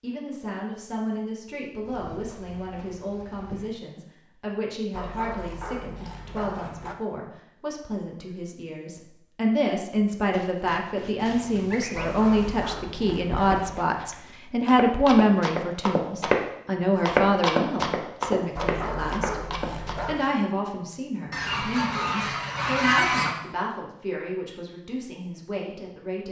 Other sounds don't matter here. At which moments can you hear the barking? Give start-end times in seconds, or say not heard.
4.9-7.0, 11.9-13.8, 18.6-20.3.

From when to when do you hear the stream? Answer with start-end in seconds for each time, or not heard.
not heard.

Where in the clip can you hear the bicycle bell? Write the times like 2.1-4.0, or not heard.
not heard.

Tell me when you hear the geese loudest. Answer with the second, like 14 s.
23 s.